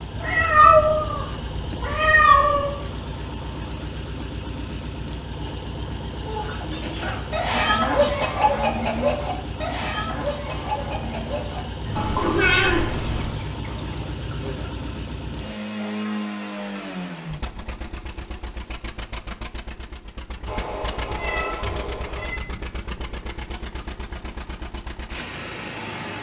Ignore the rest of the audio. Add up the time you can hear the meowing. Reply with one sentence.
You can hear the meowing for 6 seconds altogether.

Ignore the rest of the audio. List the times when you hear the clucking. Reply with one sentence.
The clucking can be heard from 6.2 to 14.8 s.